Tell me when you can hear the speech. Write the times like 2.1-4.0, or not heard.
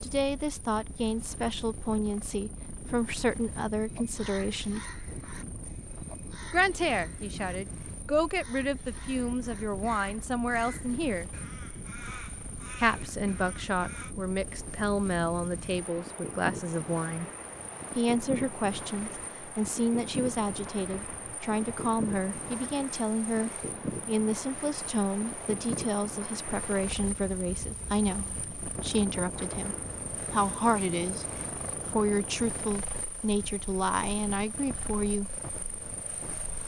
0.0-4.8, 6.5-11.3, 12.8-17.3, 17.9-31.2, 31.9-35.4.